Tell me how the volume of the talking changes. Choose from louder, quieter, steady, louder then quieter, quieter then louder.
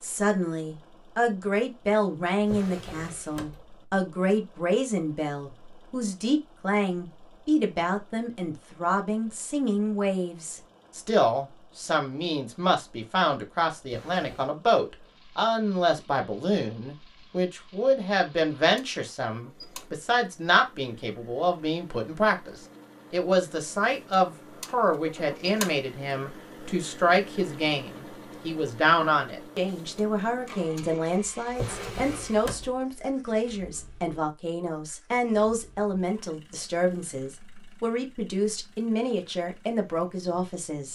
steady.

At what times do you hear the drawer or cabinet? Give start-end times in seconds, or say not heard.
2.4-3.6, 13.8-14.5, 31.5-32.7.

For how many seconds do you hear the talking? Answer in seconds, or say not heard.
41 s.